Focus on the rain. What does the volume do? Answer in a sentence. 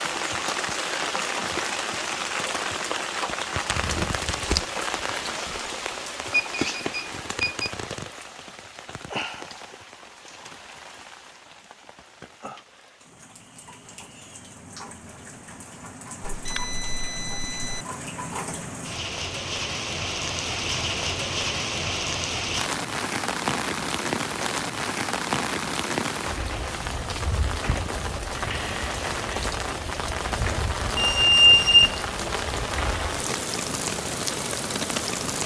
The volume of the rain goes down, then up.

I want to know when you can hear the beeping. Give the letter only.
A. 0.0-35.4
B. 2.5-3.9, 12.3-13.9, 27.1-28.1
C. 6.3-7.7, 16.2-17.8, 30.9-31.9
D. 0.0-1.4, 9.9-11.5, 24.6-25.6
C.